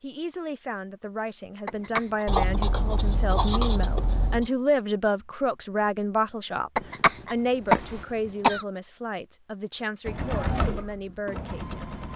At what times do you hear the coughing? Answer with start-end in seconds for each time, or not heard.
1.6-2.2, 6.8-8.7.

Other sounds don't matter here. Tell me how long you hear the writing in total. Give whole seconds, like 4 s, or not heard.
2 s.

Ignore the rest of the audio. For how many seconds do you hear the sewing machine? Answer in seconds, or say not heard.
2 s.